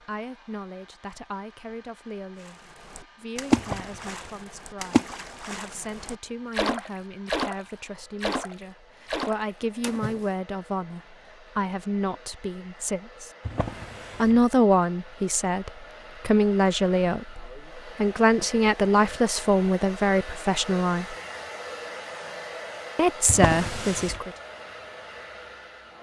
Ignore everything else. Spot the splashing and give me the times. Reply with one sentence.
The splashing can be heard from 2.4 to 10.3 s.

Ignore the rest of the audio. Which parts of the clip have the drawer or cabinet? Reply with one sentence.
You can hear the drawer or cabinet from 3.5 to 4.3 s, from 13.4 to 14.4 s and from 23.2 to 24.2 s.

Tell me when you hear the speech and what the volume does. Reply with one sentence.
The speech can be heard from 0.0 to 13.3 s, getting louder; from 14.2 to 21.1 s, at a steady volume; and briefly from 22.9 to 24.3 s.